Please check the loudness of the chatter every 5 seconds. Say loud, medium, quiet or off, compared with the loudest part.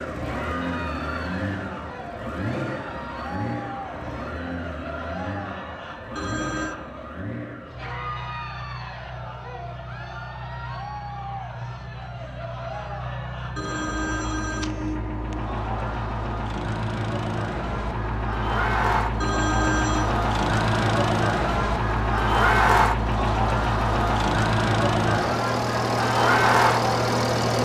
quiet, quiet, quiet, medium, loud, loud.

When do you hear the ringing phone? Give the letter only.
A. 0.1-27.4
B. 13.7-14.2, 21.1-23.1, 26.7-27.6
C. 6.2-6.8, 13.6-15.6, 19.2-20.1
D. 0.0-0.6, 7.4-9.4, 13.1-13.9
C.